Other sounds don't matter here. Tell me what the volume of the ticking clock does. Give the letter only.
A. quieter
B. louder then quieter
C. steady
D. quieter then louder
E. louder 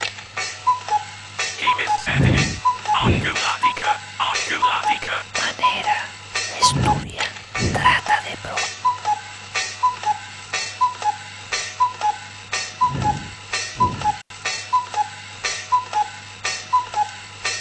C.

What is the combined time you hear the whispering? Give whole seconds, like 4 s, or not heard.
7 s.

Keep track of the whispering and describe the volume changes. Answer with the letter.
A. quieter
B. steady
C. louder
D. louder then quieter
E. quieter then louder
B.